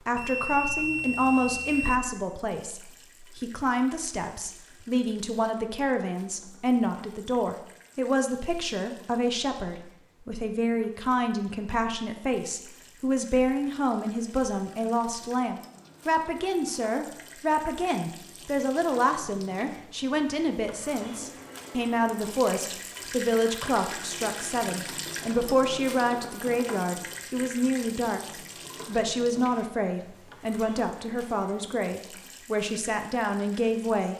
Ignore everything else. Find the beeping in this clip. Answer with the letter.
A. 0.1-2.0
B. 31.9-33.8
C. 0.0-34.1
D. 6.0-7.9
A.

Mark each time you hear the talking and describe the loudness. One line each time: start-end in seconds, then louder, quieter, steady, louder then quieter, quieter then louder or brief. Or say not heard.
0.0-34.1 steady.